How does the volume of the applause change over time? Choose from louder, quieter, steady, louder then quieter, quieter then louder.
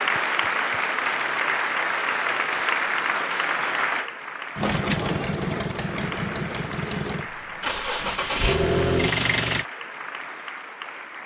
quieter.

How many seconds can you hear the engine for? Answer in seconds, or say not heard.
5 s.